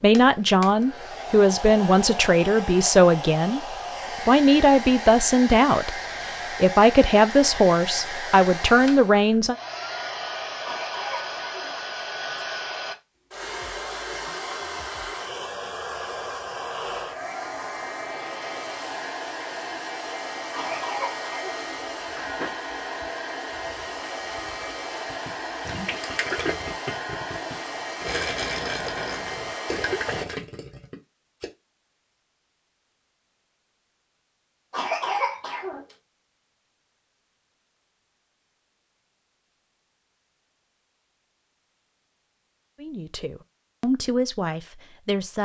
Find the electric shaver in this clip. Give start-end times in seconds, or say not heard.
not heard.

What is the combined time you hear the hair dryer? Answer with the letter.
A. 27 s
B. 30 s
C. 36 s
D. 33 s
B.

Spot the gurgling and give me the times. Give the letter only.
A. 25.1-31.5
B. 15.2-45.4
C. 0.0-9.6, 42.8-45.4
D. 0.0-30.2
A.